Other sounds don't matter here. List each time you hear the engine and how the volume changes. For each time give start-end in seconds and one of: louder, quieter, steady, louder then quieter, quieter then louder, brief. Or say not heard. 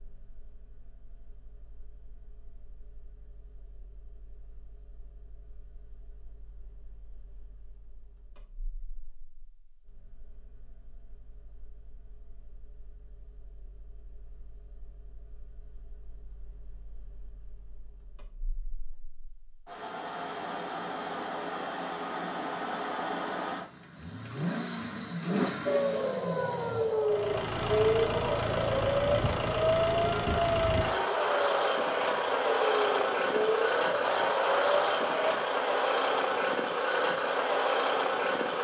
0.0-38.5 louder.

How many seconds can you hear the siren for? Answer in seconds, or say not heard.
10 s.